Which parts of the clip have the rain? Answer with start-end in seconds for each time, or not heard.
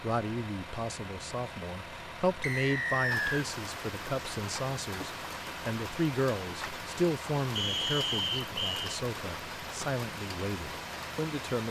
3.1-11.6.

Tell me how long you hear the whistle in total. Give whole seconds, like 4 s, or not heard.
2 s.